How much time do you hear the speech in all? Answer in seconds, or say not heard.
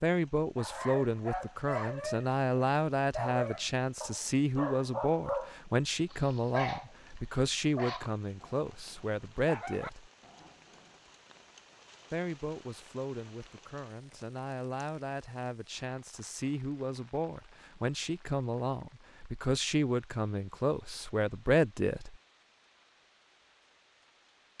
20 s.